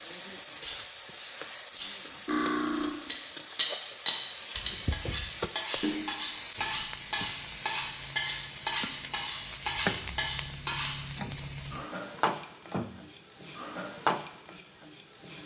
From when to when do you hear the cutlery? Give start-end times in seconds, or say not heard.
0.0-11.0.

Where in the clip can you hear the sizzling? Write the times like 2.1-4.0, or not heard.
0.0-15.4.